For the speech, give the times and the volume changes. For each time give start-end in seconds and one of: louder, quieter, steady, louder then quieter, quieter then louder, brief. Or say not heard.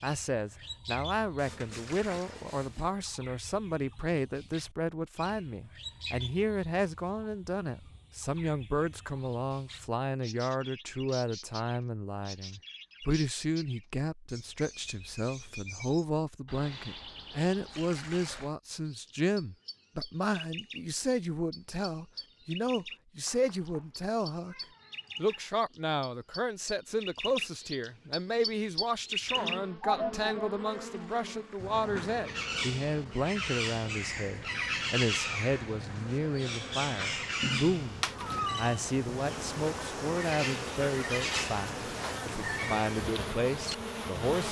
0.0-24.6 steady
25.1-44.4 steady.